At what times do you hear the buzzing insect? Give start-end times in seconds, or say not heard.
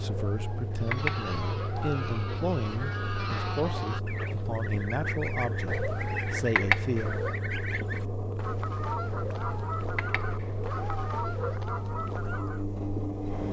not heard.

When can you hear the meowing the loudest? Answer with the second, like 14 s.
7 s.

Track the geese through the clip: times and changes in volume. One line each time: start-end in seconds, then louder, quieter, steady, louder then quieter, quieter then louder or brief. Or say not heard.
0.8-12.7 steady.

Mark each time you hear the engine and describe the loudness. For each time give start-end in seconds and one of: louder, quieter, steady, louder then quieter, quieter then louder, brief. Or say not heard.
0.0-13.4 steady.